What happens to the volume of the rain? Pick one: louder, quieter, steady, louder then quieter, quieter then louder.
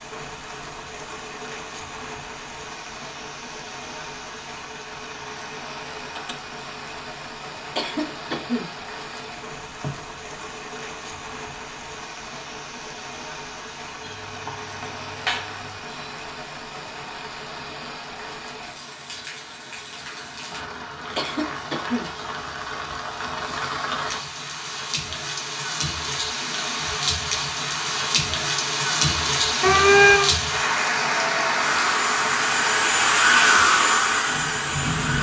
louder.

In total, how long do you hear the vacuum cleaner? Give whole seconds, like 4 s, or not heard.
4 s.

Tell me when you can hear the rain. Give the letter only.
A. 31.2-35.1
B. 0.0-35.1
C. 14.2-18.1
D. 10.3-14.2
B.